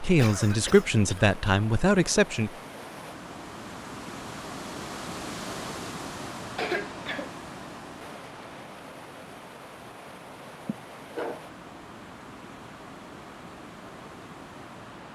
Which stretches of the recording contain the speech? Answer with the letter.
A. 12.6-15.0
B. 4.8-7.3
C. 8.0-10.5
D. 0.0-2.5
D.